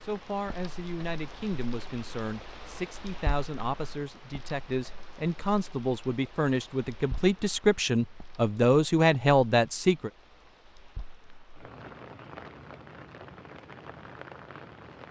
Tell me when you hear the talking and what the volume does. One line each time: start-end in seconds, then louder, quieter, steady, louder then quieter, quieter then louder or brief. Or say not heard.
0.0-10.1 louder.